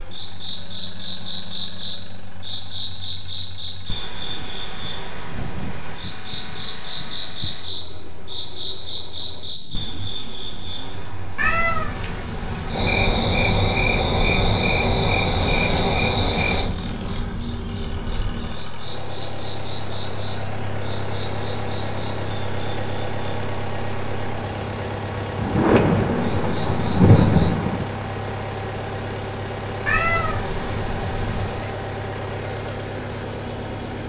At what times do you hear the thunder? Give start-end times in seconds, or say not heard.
4.2-7.6, 25.4-27.9.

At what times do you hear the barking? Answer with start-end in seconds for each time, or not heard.
not heard.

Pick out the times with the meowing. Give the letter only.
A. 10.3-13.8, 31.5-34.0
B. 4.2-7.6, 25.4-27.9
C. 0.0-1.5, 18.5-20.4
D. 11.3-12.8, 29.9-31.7
D.